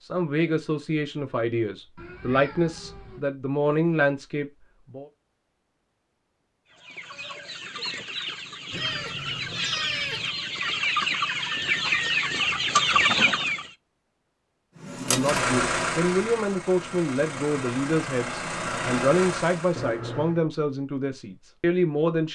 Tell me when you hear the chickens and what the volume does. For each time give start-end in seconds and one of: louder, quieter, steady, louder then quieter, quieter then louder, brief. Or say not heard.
6.7-13.7 louder.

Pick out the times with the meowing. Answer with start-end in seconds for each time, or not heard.
1.9-3.2, 8.7-10.3, 19.8-20.4.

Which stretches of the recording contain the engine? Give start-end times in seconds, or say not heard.
14.8-20.0.